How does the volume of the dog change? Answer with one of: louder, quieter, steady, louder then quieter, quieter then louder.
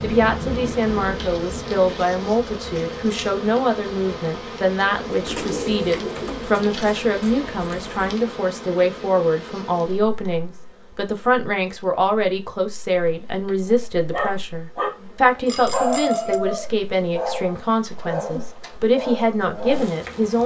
quieter.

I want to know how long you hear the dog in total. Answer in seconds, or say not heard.
6 s.